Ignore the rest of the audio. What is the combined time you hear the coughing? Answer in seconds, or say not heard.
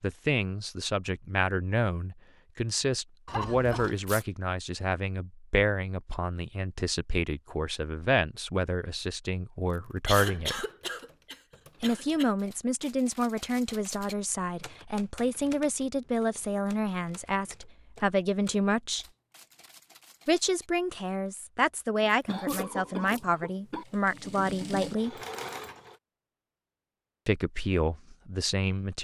5 s.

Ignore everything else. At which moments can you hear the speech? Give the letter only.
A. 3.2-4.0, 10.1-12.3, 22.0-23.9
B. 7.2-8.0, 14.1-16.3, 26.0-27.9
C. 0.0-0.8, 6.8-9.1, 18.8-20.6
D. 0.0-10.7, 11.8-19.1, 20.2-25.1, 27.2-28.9
D.